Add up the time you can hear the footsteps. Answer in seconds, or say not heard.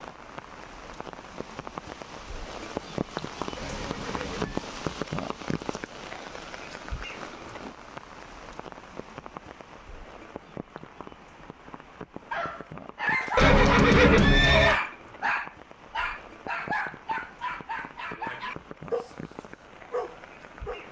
not heard.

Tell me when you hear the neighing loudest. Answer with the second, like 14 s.
14 s.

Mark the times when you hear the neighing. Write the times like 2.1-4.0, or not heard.
3.5-4.7, 13.3-14.8.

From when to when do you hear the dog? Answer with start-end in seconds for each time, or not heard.
12.3-20.8.